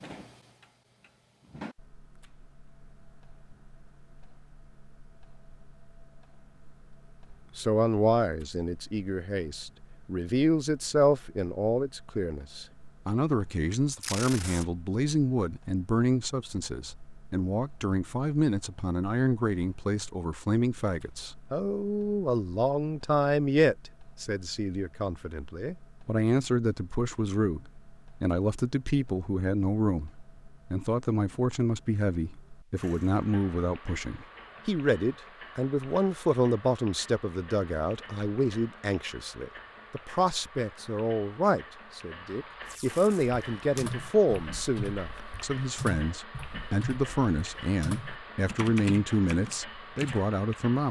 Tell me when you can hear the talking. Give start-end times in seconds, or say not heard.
7.5-50.8.